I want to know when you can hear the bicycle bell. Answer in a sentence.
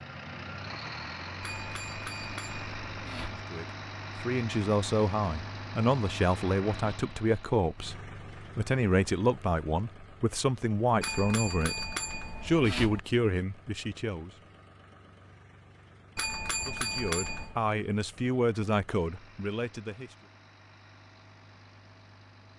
You can hear the bicycle bell from 1.4 to 3.5 s, from 11.0 to 13.0 s and from 16.1 to 17.6 s.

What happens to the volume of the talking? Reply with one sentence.
The loudness of the talking stays about the same.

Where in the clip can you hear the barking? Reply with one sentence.
The barking can't be heard in this clip.